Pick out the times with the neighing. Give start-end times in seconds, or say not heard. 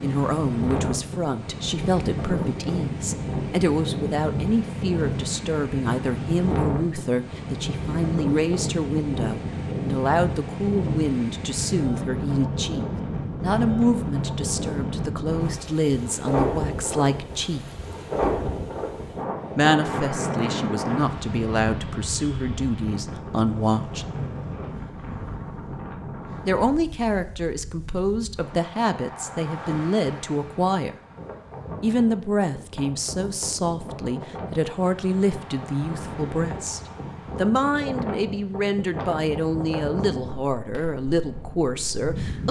not heard.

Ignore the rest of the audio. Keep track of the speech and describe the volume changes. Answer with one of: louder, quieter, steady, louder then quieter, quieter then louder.
steady.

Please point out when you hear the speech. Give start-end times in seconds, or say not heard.
0.0-17.6, 19.6-24.1, 26.4-30.9, 31.8-42.4.